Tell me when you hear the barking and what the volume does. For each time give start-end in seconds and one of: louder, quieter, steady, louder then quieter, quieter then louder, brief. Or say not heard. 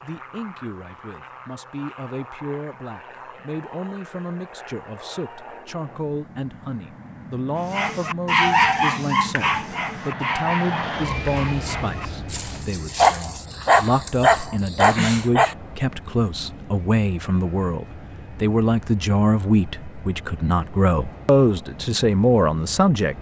7.7-15.6 quieter then louder.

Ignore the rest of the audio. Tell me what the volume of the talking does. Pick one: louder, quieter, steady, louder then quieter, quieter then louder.
louder.